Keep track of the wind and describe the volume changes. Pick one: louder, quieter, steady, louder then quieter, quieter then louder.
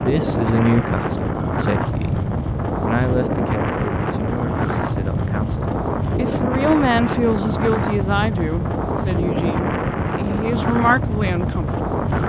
steady.